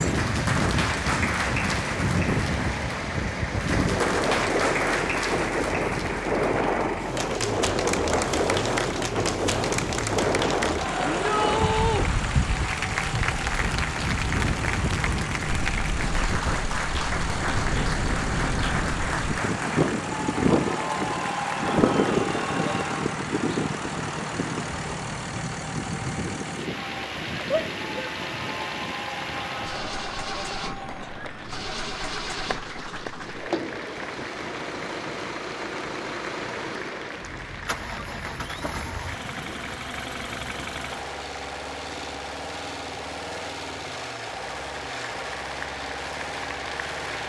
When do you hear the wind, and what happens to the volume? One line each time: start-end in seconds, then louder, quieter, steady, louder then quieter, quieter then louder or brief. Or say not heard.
0.0-39.8 quieter.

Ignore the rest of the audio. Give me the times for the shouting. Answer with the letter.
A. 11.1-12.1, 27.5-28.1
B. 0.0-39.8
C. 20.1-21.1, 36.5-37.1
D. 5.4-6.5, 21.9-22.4
A.